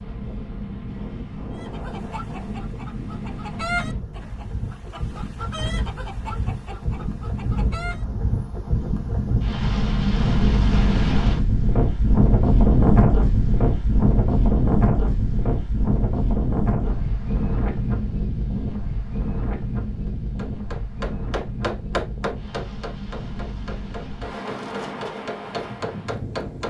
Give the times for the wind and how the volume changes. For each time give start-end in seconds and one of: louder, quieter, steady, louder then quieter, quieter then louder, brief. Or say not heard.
0.0-26.6 louder then quieter.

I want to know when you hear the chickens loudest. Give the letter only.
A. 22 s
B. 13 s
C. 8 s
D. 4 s
D.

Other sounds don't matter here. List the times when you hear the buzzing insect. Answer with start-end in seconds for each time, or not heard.
not heard.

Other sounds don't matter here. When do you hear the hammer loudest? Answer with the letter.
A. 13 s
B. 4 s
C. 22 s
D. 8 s
C.